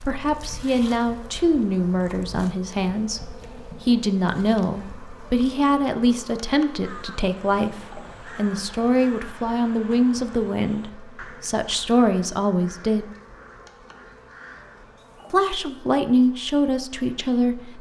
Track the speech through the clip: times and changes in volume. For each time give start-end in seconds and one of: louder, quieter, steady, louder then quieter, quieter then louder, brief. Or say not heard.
0.0-13.1 steady
15.3-17.7 brief.